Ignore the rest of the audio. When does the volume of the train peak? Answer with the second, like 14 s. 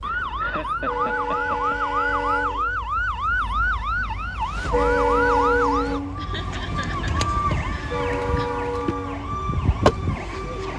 5 s.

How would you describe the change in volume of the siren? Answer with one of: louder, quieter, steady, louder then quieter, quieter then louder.
steady.